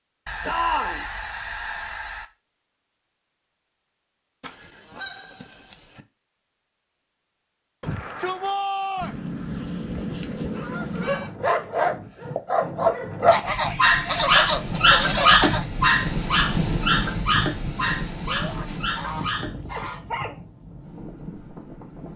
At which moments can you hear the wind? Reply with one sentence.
The wind can be heard from 9.9 to 22.1 s.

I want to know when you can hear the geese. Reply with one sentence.
The geese can be heard from 0.2 to 2.2 s, from 4.4 to 6.0 s, from 9.0 to 11.3 s, from 13.2 to 15.7 s and from 18.5 to 20.1 s.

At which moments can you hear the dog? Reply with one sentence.
The dog can be heard from 10.5 to 20.4 s.